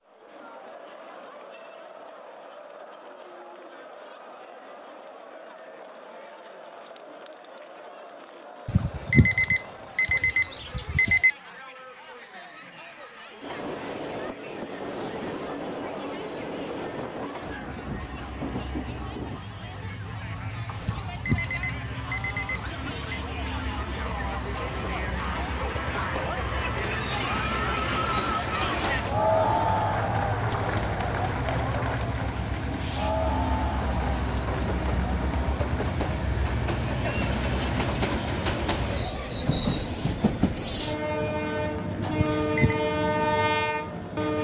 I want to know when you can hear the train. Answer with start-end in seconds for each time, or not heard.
13.4-44.3.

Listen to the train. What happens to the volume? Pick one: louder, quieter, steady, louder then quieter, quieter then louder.
louder.